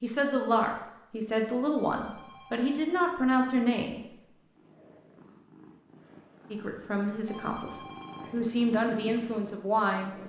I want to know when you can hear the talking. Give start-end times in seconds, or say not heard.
0.0-4.0, 6.5-10.2.